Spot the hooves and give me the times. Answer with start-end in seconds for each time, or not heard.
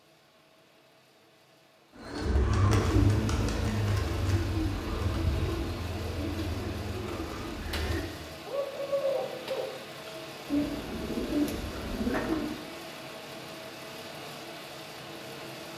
not heard.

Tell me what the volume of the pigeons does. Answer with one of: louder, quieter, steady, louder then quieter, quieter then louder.
quieter then louder.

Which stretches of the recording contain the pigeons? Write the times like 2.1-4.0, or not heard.
1.9-12.6.